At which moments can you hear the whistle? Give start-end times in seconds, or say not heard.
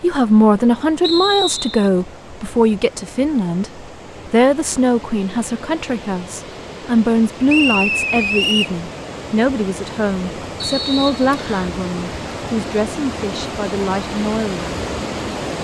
1.0-1.9, 7.5-8.8, 10.6-11.7.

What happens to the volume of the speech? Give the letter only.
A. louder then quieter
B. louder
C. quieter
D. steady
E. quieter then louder
C.